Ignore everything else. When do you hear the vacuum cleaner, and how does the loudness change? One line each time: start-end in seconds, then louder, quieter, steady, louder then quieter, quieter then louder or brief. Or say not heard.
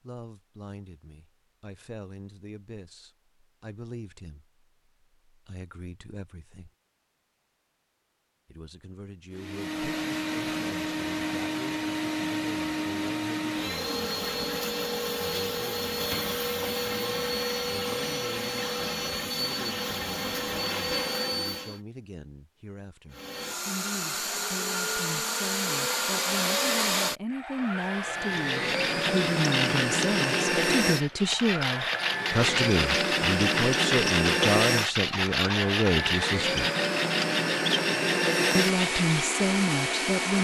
9.3-21.8 steady
23.1-40.3 steady.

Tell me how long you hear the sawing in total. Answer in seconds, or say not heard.
11 s.